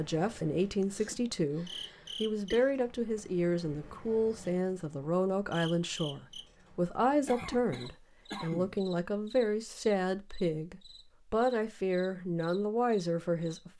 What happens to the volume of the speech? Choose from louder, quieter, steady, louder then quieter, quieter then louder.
steady.